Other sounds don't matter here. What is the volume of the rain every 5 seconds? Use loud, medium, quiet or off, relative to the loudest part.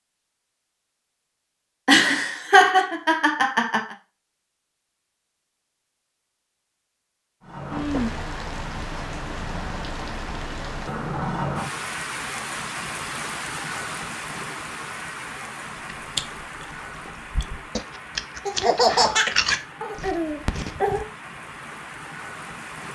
off, loud, loud, medium, medium.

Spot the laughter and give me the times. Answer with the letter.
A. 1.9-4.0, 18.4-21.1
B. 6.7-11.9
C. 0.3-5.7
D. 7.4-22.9
A.